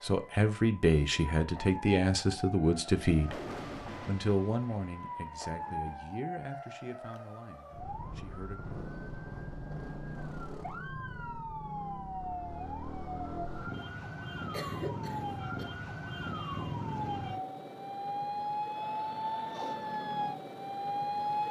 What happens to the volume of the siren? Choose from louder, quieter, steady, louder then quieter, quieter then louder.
louder.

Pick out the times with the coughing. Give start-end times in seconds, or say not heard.
14.5-15.7.